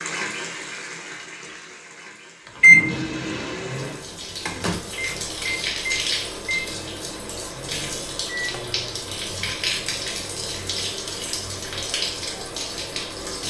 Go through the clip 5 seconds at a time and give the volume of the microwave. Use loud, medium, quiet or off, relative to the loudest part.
loud, quiet, off.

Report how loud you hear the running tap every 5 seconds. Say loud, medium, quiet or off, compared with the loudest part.
medium, loud, loud.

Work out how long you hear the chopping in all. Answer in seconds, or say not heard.
not heard.